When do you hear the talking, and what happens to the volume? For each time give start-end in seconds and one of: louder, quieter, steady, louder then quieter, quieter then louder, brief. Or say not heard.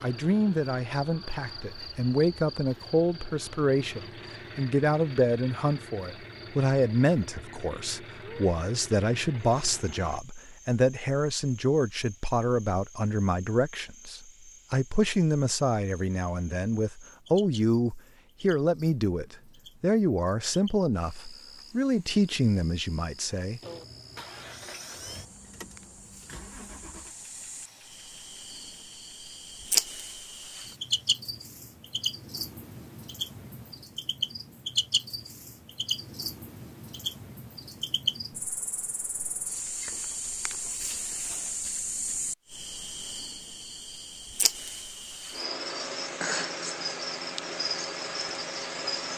0.0-23.6 steady.